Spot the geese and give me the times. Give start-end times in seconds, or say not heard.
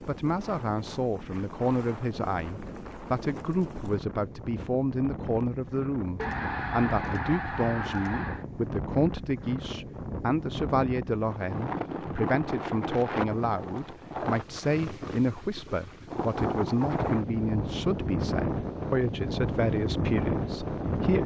6.2-8.4.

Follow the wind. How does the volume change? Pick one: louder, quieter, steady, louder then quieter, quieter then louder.
louder.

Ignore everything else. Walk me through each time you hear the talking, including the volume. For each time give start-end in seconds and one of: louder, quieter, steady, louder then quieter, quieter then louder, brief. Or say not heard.
0.1-21.2 steady.